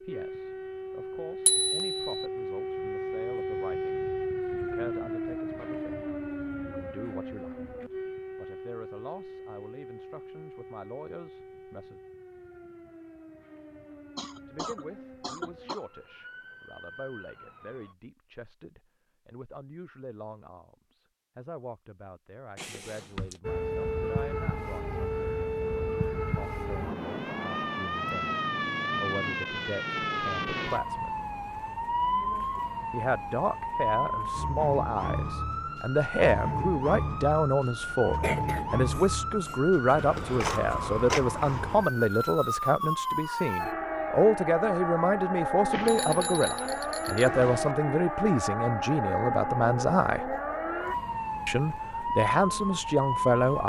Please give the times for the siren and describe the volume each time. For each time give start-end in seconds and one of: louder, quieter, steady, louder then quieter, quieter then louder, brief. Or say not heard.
0.0-17.9 quieter
23.4-53.6 steady.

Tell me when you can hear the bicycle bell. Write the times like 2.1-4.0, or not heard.
1.4-2.2, 22.6-23.4, 45.7-47.8.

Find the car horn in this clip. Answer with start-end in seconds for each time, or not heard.
not heard.